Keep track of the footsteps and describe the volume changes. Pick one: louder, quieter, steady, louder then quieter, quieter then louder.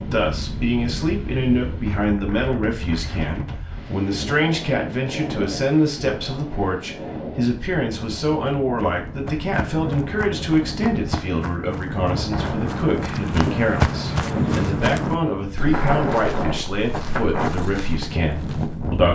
louder then quieter.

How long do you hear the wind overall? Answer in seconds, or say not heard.
19 s.